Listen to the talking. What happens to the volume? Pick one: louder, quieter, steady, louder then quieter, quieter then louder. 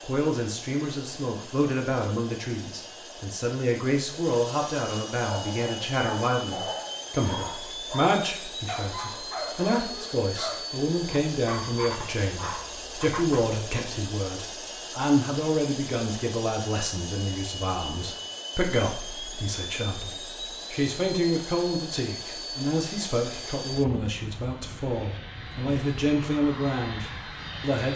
steady.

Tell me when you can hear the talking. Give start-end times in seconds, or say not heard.
0.0-27.9.